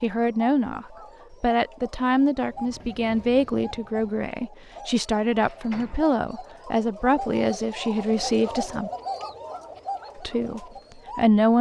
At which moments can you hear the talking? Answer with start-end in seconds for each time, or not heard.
0.0-8.9, 10.2-11.5.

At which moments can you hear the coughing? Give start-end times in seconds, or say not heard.
not heard.